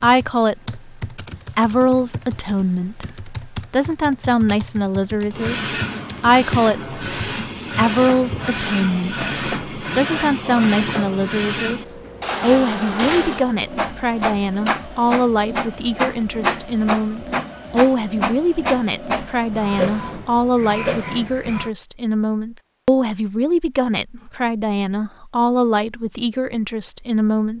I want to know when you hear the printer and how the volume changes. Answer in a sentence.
You can hear the printer from 5.3 to 21.7 s, at a steady volume.